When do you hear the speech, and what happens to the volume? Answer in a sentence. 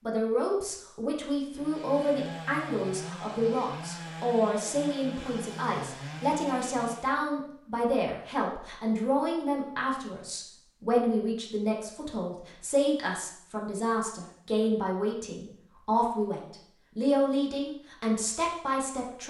You can hear the speech from 0.1 to 19.2 s, at a steady volume.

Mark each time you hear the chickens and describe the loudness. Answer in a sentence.
The chickens can't be heard in this clip.